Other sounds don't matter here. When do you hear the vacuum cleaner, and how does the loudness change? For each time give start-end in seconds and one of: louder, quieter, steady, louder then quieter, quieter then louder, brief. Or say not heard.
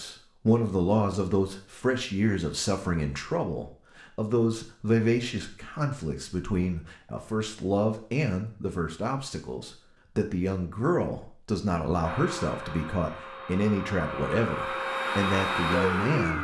12.0-16.4 louder.